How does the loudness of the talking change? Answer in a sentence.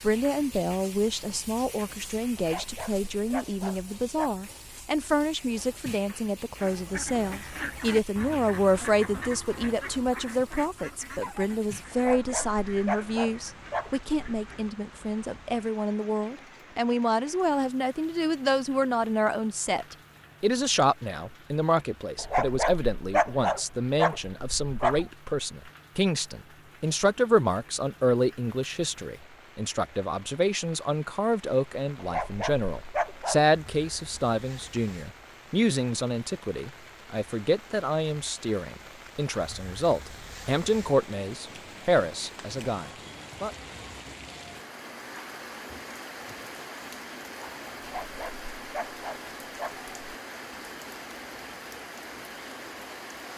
The loudness of the talking stays about the same.